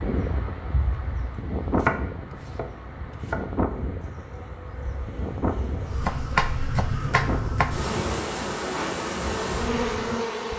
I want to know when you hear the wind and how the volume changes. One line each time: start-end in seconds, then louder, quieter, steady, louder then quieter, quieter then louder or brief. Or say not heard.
0.0-10.5 quieter.